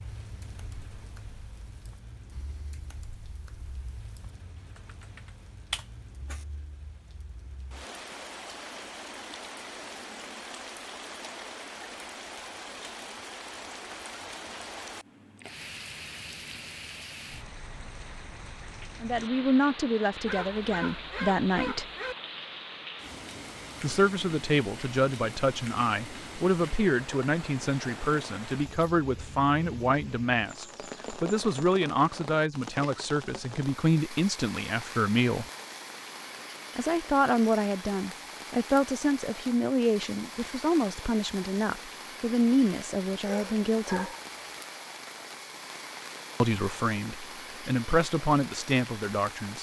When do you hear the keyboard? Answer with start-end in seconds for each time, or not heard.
0.0-6.5.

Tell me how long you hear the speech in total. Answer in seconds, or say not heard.
25 s.